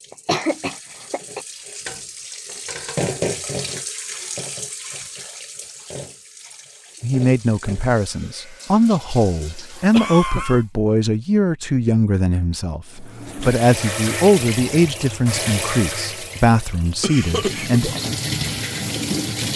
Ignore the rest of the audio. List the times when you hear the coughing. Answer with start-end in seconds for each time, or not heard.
0.1-1.4, 9.9-10.6, 17.0-17.8.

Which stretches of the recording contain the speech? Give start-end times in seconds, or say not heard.
7.0-18.0.